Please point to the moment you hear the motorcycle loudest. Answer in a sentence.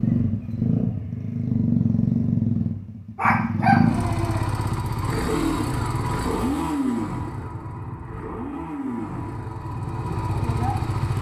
The loudest moment of the motorcycle is at 2 seconds.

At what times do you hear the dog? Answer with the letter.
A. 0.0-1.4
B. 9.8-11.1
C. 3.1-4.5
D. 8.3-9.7
C.